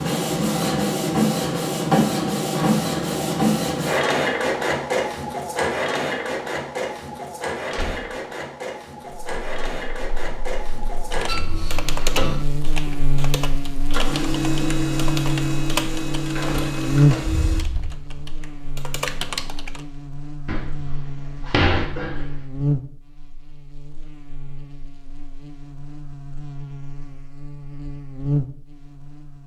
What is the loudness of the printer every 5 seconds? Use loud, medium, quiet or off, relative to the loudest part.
loud, medium, medium, medium, off, off.